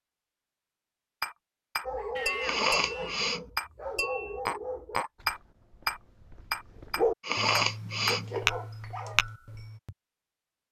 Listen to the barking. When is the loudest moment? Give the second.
7 s.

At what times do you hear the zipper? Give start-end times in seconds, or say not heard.
not heard.